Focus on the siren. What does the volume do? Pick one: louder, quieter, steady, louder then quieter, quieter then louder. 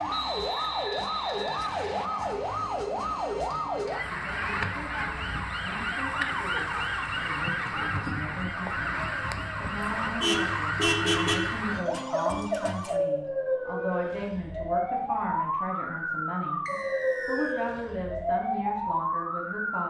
steady.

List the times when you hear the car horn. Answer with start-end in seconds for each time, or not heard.
10.0-11.6.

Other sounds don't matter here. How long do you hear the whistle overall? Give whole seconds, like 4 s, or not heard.
3 s.